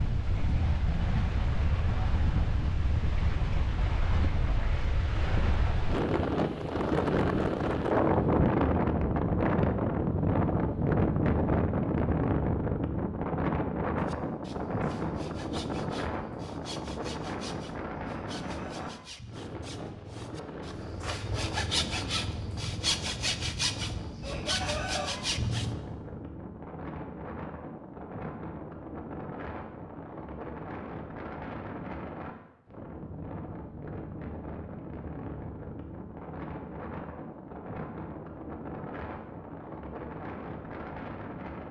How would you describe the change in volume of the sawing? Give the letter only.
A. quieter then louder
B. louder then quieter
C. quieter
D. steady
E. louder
E.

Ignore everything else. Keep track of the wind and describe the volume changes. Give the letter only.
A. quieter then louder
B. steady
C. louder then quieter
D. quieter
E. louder
D.